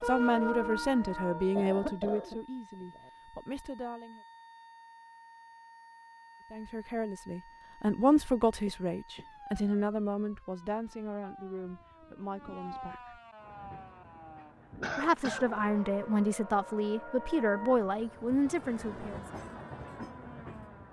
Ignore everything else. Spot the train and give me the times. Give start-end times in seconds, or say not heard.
0.0-2.0, 13.3-20.8.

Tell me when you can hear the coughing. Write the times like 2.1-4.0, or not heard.
1.6-3.1, 8.2-9.7, 14.8-15.5.